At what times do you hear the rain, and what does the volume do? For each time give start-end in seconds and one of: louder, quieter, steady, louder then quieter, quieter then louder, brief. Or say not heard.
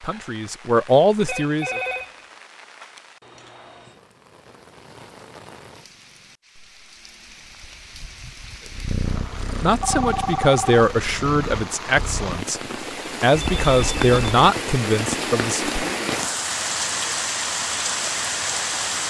0.0-19.0 louder.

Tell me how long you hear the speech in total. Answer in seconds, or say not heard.
7 s.